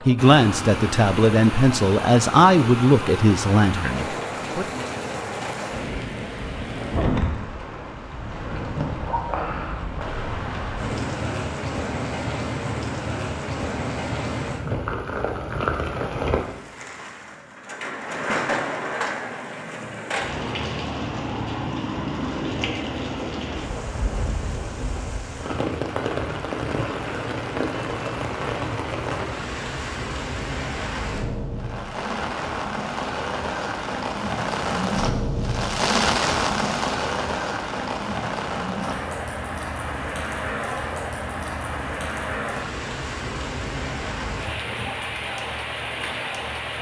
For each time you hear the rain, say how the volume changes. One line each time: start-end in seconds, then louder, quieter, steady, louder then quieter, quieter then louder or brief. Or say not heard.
0.0-46.7 steady.